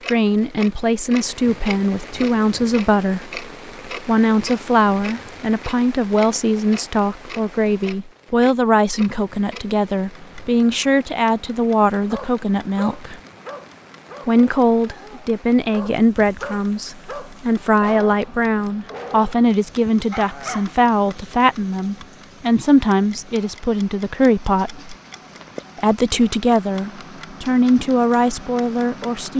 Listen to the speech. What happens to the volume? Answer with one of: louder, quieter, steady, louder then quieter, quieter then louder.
steady.